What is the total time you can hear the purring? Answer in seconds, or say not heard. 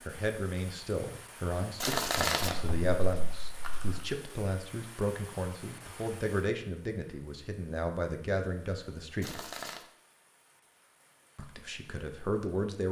not heard.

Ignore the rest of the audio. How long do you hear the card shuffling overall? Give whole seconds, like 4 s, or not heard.
3 s.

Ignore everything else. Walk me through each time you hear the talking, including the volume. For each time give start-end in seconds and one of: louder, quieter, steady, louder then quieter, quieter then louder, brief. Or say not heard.
0.0-9.3 steady
11.3-12.8 brief.